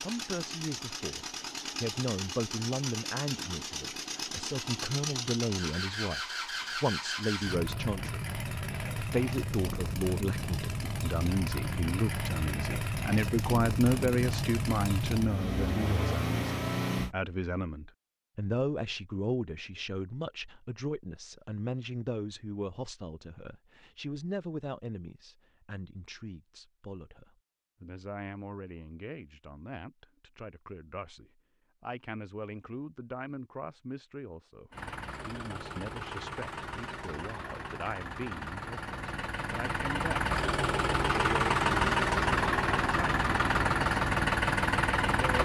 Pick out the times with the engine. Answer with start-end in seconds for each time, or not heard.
0.0-17.1, 34.7-45.3.